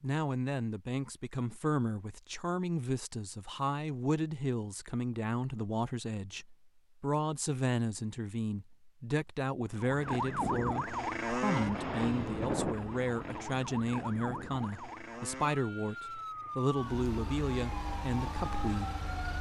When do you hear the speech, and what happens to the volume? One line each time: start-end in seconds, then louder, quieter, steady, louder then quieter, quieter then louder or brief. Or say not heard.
0.0-19.3 steady.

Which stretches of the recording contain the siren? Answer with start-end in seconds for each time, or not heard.
9.8-19.3.